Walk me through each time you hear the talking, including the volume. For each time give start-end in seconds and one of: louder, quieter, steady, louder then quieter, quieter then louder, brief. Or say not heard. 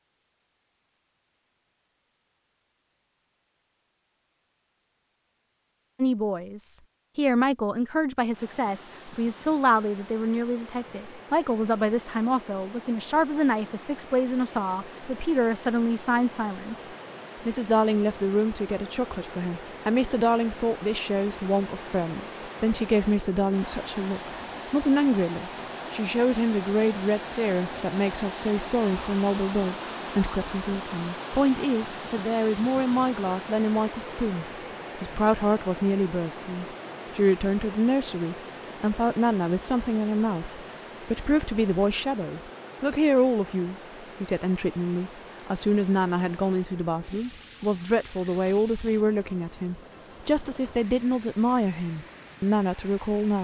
6.0-16.9 steady
17.4-53.3 steady.